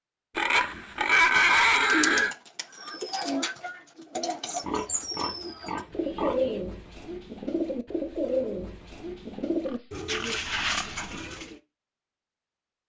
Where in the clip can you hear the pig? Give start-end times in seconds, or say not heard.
0.3-2.4, 4.7-6.6, 9.7-11.0.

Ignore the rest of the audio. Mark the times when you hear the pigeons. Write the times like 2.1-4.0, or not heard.
1.8-11.6.